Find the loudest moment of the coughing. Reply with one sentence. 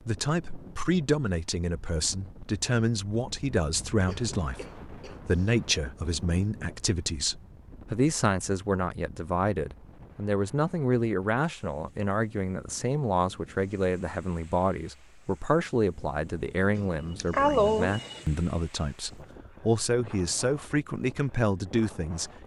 The volume of the coughing peaks at 18 seconds.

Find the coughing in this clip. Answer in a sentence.
The coughing can be heard from 4.0 to 5.5 s and from 16.8 to 18.2 s.